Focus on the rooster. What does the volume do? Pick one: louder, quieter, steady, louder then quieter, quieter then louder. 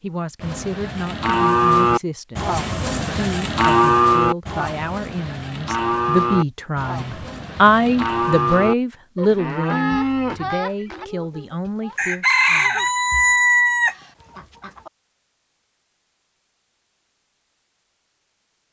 louder then quieter.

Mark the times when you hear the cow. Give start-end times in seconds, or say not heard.
0.4-11.1.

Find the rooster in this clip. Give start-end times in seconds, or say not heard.
10.9-14.9.